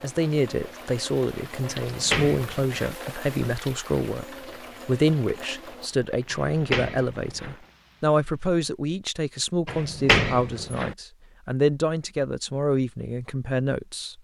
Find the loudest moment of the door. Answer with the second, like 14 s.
10 s.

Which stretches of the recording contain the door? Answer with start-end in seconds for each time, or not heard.
1.7-3.0, 6.3-7.5, 9.7-10.9.